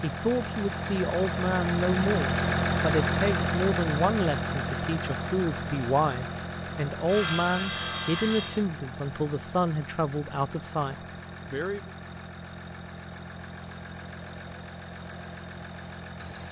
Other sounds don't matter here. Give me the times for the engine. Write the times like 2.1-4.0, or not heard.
0.0-16.4.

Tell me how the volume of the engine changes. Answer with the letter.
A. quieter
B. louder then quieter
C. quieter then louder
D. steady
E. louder
A.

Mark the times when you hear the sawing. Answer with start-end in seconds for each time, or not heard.
7.0-8.7.